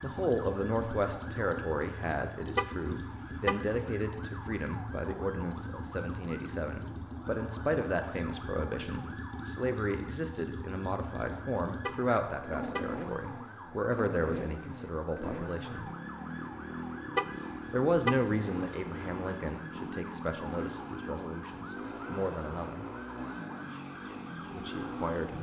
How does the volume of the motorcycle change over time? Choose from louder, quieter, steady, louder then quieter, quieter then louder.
steady.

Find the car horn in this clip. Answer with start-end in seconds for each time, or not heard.
2.5-3.8, 11.8-13.1, 17.1-18.4.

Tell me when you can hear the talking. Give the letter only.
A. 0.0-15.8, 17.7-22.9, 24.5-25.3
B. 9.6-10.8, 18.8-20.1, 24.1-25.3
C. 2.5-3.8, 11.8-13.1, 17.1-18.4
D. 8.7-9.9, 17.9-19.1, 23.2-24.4
A.